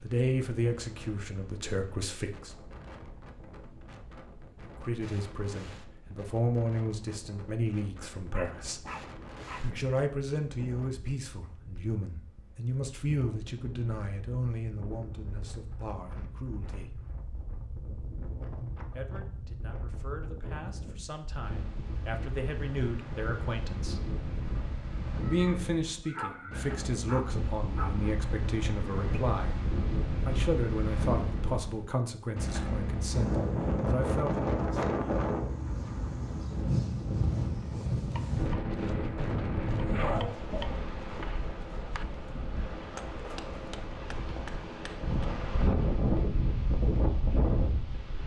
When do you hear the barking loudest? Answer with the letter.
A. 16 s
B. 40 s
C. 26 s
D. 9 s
B.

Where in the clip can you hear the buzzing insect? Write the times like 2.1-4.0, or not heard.
not heard.